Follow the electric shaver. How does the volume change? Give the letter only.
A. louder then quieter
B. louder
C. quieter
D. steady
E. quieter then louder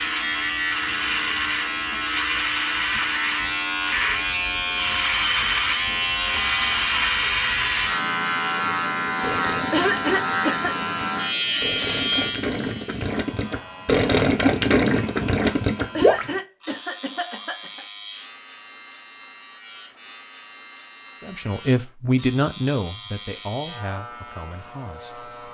C.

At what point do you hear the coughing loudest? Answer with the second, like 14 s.
10 s.